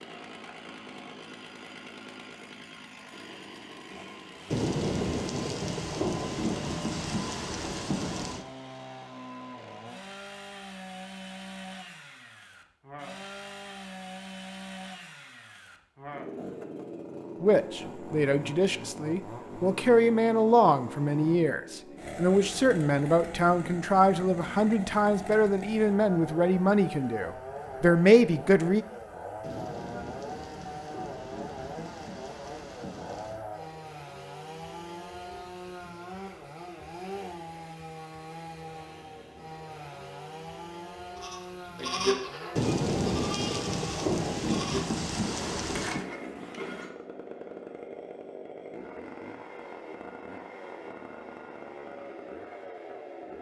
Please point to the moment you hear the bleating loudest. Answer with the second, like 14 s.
42 s.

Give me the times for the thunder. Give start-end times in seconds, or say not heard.
4.5-8.4, 29.4-33.4, 42.5-46.0.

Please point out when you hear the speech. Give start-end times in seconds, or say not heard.
17.4-28.9.